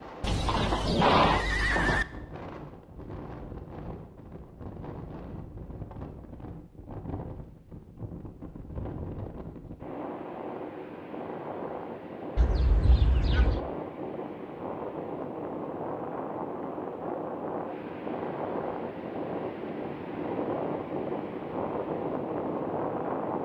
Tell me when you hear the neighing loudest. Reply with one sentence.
The volume of the neighing peaks at 1 second.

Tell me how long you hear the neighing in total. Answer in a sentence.
The neighing can be heard for 3 seconds in total.